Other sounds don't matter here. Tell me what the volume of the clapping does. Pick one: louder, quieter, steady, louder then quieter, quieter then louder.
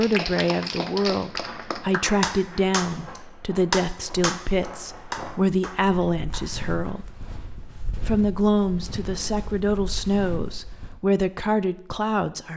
louder then quieter.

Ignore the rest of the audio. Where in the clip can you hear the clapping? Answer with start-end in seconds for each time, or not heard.
0.0-7.0.